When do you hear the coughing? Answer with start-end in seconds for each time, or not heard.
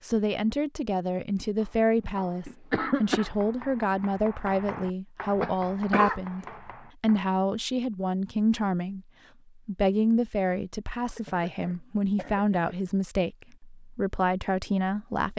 2.0-3.3, 5.4-6.5, 11.2-12.8.